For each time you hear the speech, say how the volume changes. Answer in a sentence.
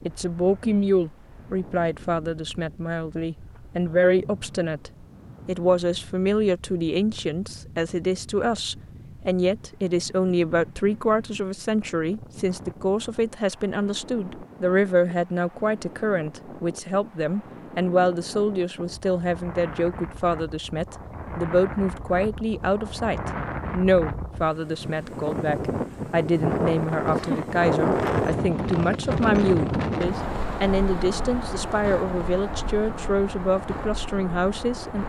You can hear the speech from 0.0 to 35.0 s, at a steady volume.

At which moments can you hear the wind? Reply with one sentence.
The wind can be heard from 0.0 to 35.0 s.